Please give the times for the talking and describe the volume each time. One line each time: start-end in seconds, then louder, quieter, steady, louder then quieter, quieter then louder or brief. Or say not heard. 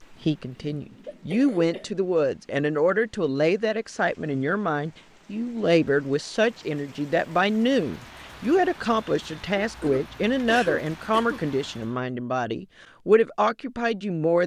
0.0-14.4 steady.